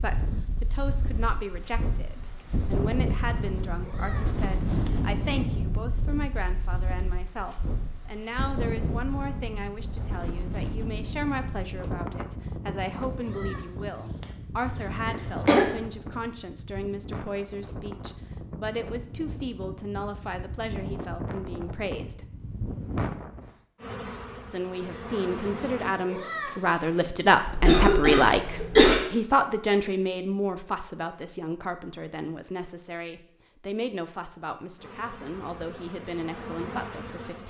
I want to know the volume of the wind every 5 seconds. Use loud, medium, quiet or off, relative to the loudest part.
loud, loud, loud, medium, loud, off, off, off.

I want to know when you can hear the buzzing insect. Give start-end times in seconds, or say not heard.
23.8-25.9, 34.8-37.4.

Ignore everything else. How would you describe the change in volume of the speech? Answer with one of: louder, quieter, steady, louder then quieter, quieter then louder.
louder then quieter.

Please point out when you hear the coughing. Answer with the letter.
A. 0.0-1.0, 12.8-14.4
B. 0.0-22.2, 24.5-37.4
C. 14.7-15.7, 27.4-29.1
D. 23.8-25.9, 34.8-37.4
C.